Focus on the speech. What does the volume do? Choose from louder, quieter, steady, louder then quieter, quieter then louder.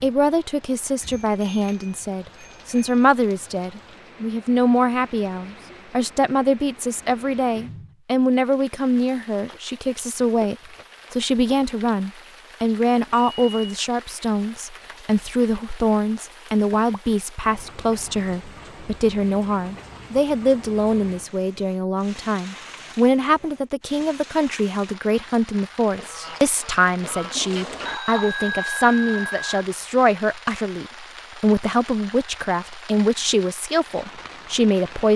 steady.